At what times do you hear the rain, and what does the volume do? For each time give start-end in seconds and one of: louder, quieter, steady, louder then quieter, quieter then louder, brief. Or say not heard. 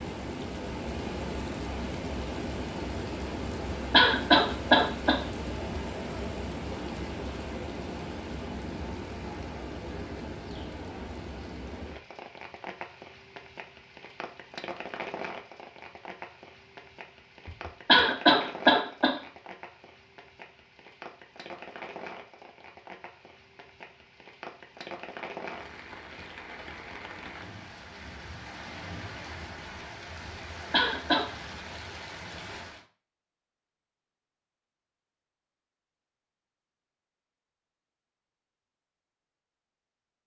0.0-32.9 quieter.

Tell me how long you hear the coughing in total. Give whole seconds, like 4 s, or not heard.
3 s.